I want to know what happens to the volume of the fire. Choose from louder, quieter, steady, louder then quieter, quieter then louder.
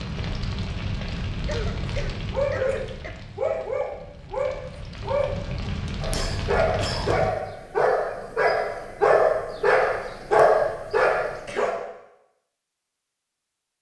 quieter then louder.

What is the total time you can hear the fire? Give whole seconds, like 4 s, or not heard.
7 s.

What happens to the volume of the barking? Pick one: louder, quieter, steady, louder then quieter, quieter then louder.
louder.